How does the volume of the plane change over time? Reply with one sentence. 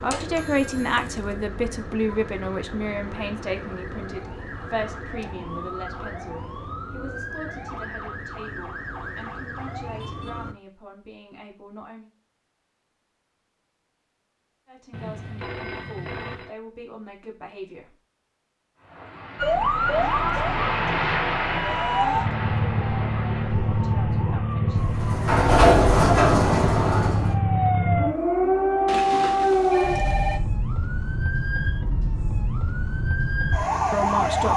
The volume of the plane goes up, then down.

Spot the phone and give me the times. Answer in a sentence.
The phone can be heard from 0.3 to 1.4 s, from 14.9 to 16.5 s and from 28.9 to 30.4 s.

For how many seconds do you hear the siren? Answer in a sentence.
You can hear the siren for 26 seconds altogether.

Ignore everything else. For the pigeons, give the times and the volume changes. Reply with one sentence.
You can't hear the pigeons here.